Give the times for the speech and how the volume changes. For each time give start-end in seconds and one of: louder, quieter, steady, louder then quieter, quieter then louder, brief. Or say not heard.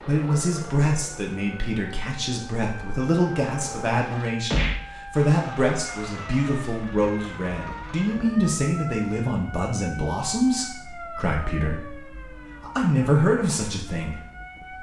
0.1-14.7 steady.